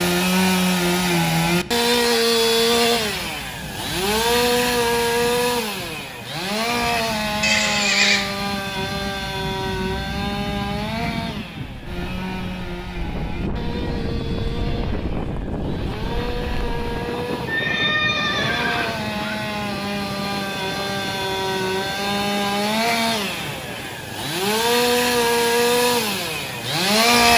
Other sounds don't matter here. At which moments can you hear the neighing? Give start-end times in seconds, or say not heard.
7.4-8.2, 17.4-19.4.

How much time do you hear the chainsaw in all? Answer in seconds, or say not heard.
27 s.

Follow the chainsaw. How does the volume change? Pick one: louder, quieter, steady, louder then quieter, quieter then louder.
quieter then louder.